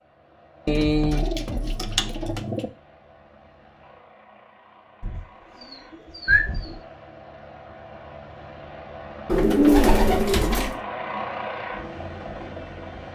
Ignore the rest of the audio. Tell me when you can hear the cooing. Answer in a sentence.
The cooing can be heard from 0.7 to 2.7 s, from 5.0 to 6.8 s and from 9.2 to 10.8 s.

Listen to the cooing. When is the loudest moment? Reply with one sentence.
The volume of the cooing peaks at 10 seconds.